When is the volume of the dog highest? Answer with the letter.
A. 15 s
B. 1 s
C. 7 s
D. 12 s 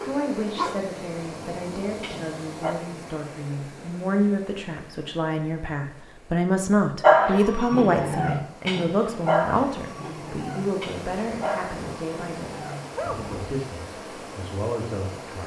C.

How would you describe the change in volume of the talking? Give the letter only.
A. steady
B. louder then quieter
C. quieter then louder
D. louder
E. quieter
B.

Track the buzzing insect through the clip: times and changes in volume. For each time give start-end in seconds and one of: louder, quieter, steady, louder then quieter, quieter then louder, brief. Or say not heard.
not heard.